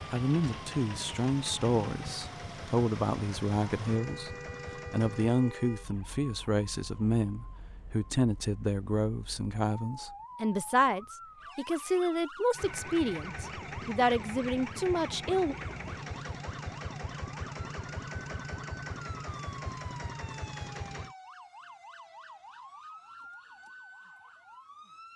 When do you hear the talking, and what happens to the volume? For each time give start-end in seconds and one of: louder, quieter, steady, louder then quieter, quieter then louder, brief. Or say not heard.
0.1-15.6 steady.